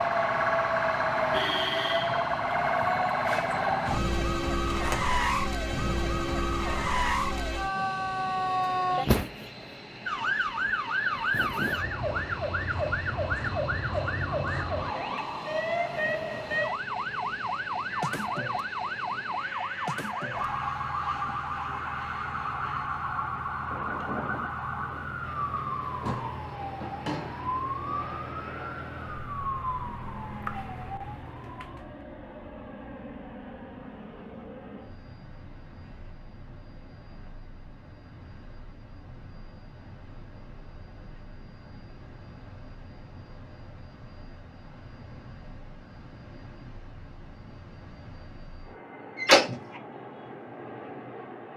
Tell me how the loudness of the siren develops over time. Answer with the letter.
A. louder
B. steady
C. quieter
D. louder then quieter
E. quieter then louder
C.